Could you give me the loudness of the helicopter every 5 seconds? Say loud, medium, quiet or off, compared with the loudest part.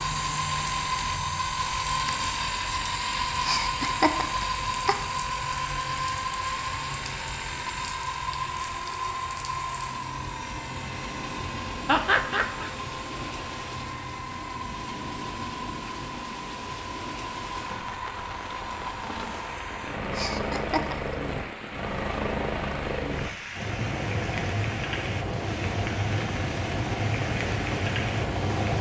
loud, loud, medium, medium, loud, loud.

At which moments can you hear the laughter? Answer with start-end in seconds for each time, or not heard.
3.4-5.0, 11.8-12.7, 20.1-21.1.